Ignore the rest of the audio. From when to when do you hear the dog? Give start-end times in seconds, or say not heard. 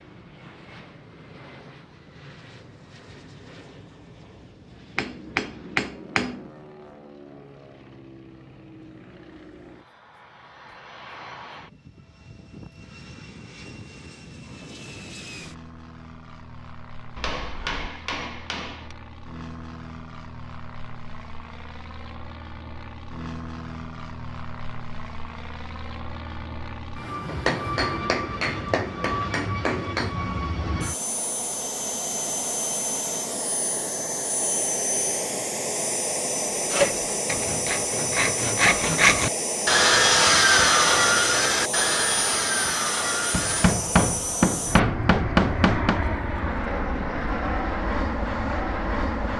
not heard.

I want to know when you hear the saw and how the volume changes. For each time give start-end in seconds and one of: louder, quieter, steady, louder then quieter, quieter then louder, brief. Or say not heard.
36.5-43.8 louder then quieter.